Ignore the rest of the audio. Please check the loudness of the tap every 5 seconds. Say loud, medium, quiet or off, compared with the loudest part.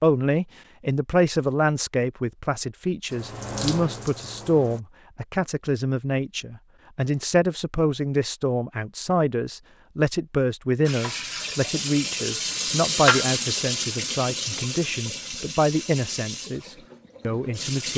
medium, off, loud, medium.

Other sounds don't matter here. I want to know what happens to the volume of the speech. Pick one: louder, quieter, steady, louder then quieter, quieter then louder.
steady.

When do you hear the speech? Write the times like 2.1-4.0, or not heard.
0.0-17.9.